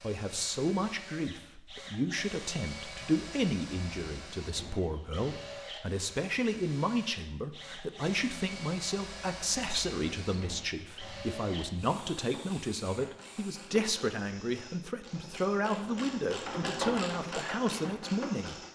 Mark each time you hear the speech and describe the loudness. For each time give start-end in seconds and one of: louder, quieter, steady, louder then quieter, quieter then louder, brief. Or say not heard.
0.0-18.6 steady.